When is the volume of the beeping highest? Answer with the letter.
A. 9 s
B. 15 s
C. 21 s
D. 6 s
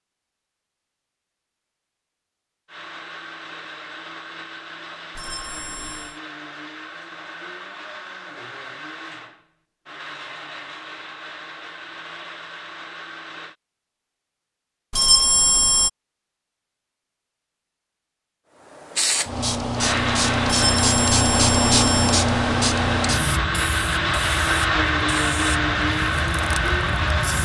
B.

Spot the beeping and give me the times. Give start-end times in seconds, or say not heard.
5.2-6.2, 14.9-15.9, 20.4-22.1.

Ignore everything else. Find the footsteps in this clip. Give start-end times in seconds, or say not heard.
not heard.